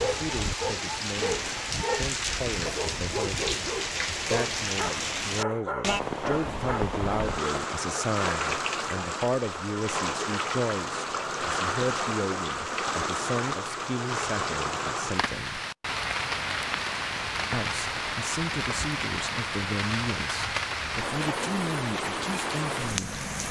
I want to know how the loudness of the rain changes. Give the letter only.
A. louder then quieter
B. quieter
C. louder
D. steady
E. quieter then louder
D.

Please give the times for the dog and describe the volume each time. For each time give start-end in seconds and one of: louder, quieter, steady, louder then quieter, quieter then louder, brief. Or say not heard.
0.0-7.0 steady.